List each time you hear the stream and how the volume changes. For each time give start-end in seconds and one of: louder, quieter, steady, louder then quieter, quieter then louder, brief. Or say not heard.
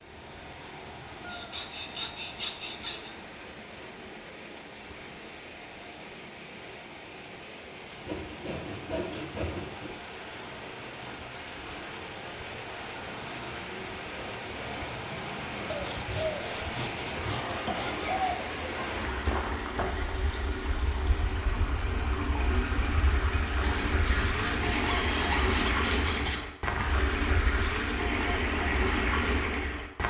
0.0-30.0 louder.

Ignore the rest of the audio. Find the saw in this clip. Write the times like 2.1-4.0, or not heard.
1.2-3.1, 8.1-9.9, 15.7-18.4, 23.6-26.4.